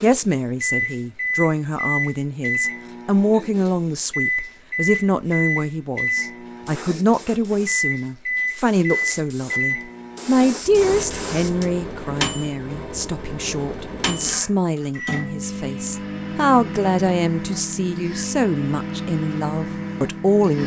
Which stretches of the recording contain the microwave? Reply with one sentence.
You can hear the microwave from 0.0 to 20.6 s.